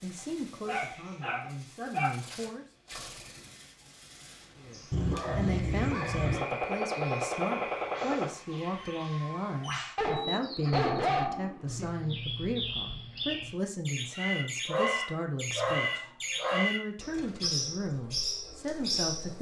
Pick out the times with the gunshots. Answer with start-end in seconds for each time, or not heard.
6.3-8.3.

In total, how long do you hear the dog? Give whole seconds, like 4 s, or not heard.
7 s.